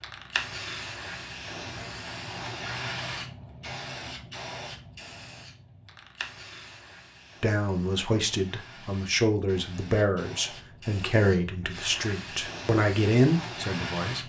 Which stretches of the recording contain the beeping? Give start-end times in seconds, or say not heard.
not heard.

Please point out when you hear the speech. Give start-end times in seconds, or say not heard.
7.4-14.2.